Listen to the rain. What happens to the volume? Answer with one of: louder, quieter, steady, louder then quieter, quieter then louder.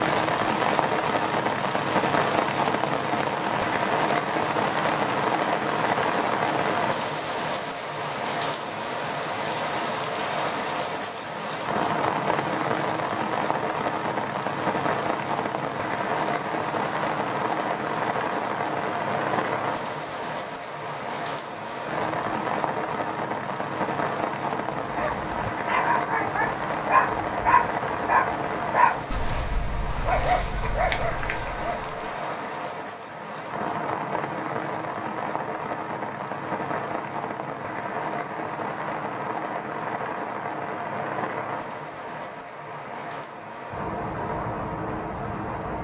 quieter.